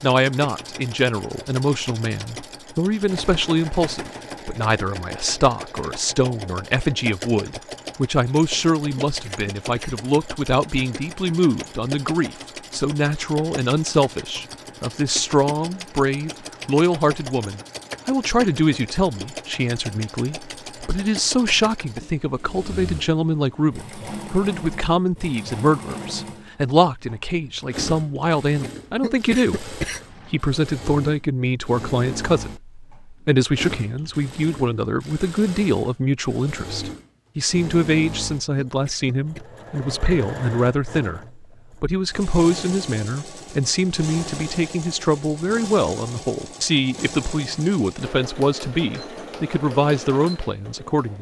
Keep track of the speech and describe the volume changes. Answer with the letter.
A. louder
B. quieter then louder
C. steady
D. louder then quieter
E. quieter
C.